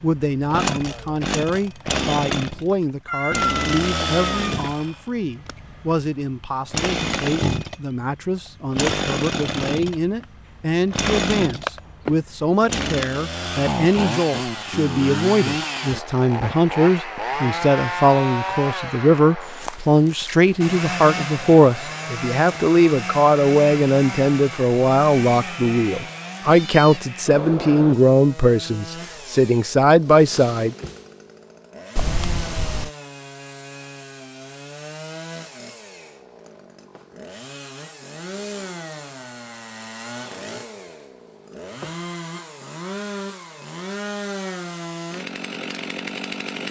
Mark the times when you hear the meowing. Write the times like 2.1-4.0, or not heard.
3.0-4.5, 26.4-27.1, 31.9-32.9.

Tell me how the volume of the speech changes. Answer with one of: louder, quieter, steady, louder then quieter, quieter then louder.
louder.